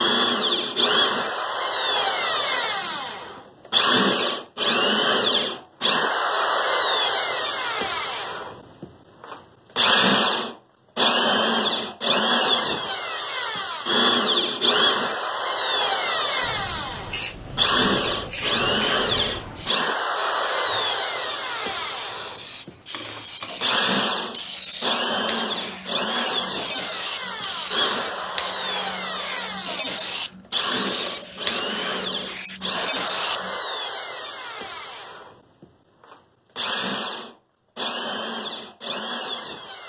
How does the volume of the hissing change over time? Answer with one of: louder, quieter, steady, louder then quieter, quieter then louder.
louder.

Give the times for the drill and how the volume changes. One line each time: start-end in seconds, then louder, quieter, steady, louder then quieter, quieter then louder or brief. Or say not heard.
0.0-39.8 quieter.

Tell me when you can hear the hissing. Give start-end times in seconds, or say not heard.
16.4-33.5.